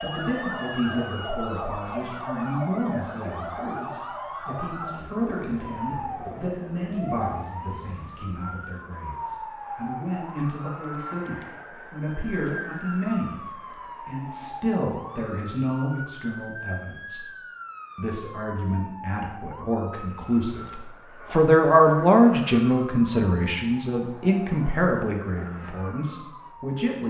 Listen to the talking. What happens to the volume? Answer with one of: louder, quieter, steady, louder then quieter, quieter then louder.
louder.